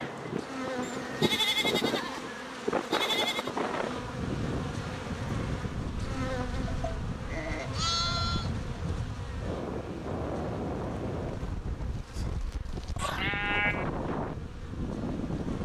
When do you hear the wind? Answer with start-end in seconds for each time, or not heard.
0.0-15.6.